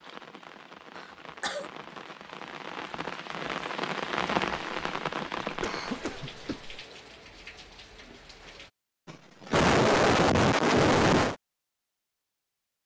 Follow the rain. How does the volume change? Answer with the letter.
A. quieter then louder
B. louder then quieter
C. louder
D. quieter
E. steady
B.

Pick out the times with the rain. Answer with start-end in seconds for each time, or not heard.
0.0-8.7.